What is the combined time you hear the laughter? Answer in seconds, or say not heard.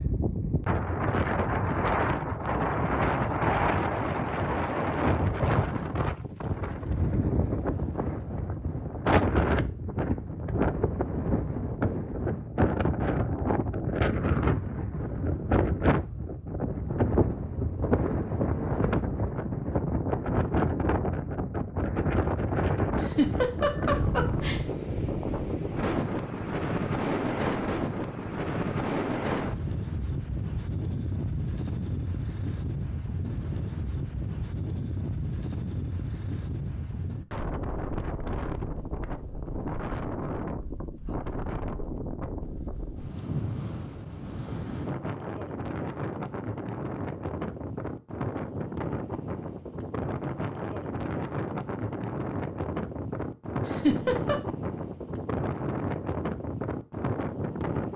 2 s.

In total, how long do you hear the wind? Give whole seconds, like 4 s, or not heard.
58 s.